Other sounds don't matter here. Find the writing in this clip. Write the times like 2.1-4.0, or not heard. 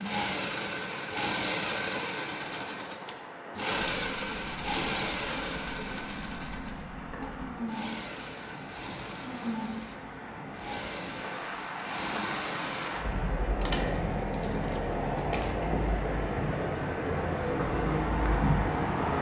not heard.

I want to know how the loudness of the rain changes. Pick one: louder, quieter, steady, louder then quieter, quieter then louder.
louder.